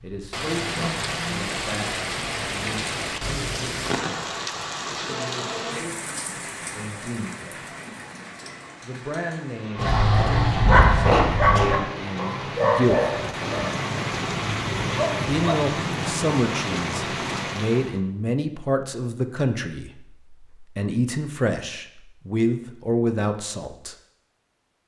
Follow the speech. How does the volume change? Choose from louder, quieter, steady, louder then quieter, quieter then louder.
louder.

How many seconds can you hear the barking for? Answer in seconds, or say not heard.
6 s.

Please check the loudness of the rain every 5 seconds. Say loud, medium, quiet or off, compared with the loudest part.
loud, medium, loud, loud, off.